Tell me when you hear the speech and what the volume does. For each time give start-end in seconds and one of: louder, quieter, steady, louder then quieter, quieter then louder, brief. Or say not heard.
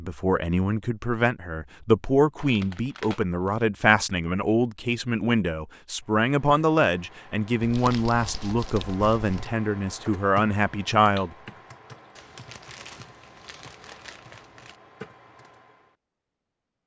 0.0-11.3 steady.